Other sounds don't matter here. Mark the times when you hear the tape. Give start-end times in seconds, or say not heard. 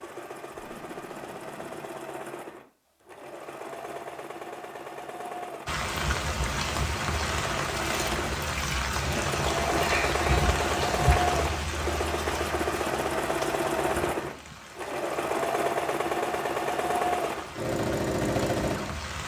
0.5-2.0.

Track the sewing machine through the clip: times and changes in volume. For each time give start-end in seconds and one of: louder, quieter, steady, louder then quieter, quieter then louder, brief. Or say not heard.
0.0-19.2 louder.